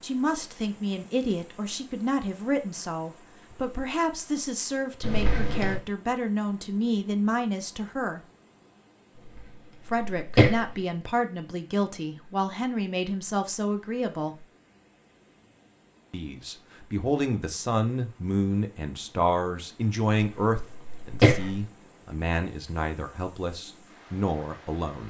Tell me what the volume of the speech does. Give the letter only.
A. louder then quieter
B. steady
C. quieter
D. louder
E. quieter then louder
B.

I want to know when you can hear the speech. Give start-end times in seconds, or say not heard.
0.0-8.2, 9.8-14.4, 16.1-25.0.